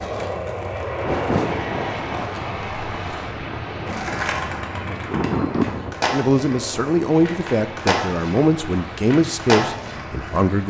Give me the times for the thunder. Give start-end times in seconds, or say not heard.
1.0-6.0.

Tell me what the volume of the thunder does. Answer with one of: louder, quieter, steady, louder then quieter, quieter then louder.
quieter then louder.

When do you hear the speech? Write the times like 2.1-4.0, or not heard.
6.1-10.6.